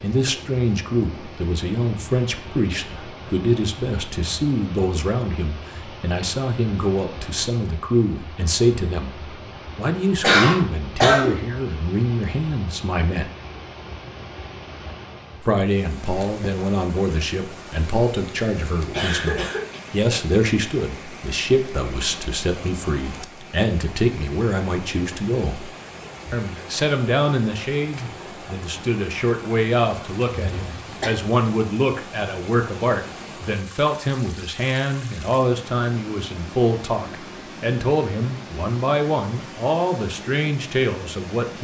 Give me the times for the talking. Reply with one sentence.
You can hear the talking from 0.0 to 13.3 s, from 15.4 to 25.7 s and from 26.3 to 41.5 s.